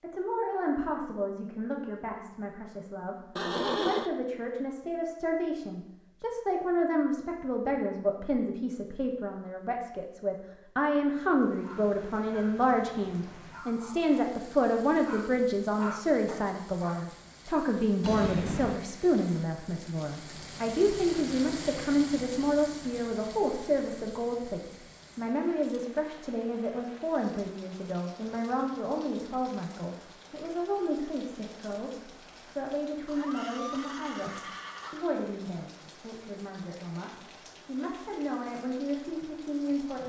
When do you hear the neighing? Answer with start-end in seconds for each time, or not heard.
3.4-4.1, 18.0-18.8, 33.0-35.1.